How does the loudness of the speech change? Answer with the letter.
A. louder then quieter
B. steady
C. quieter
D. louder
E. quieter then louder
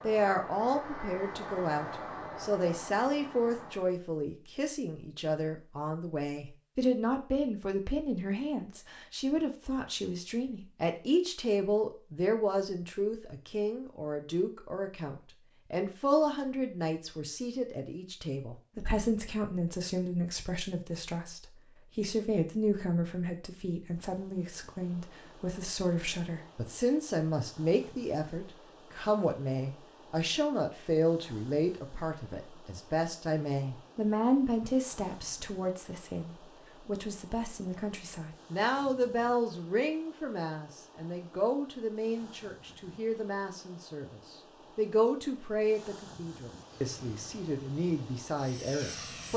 B.